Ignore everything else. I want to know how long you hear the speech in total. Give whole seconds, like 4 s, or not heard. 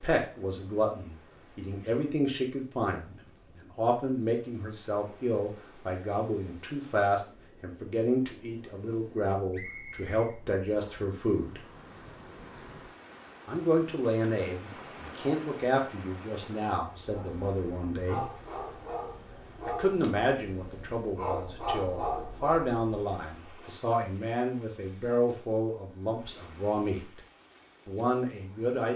25 s.